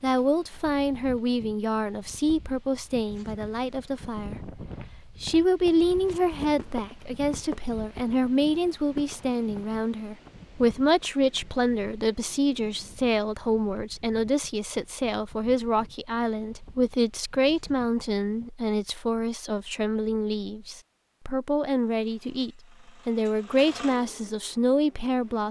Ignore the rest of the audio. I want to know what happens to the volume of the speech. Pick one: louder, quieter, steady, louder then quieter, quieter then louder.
steady.